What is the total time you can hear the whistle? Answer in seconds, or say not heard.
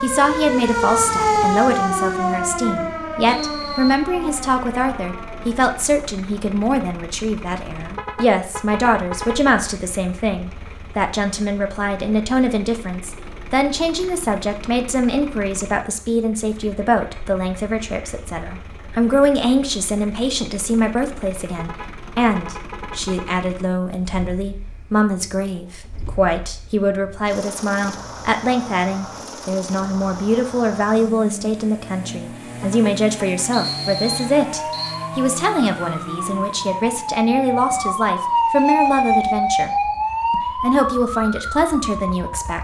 2 s.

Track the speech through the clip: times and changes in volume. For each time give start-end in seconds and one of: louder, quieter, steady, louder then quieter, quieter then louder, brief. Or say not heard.
0.0-39.7 steady
40.3-42.5 brief.